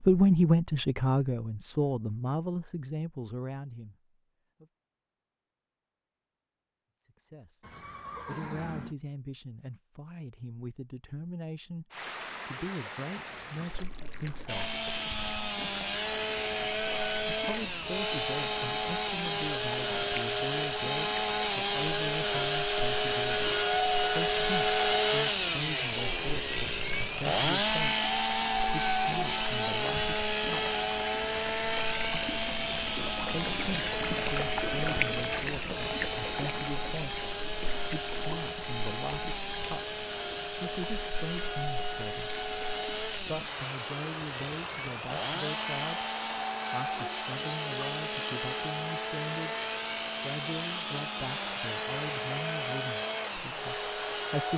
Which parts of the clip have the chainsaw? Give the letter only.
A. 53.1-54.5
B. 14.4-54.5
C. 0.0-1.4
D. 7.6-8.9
B.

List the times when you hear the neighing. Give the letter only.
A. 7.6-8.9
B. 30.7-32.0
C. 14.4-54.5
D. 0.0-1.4
A.